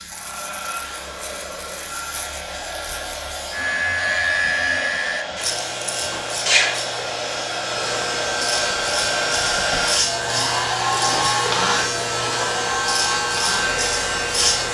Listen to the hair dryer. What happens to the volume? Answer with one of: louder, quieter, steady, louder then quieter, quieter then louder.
louder.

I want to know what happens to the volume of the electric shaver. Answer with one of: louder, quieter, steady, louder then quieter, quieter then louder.
louder.